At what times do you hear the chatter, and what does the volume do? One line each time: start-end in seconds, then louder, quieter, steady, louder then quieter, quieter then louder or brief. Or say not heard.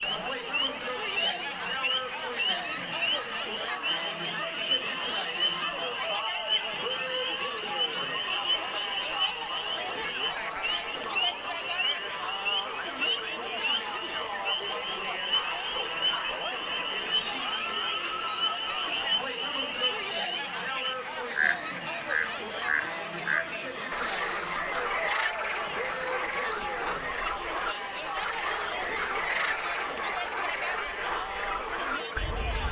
0.0-32.6 steady.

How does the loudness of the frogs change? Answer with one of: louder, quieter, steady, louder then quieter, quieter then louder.
steady.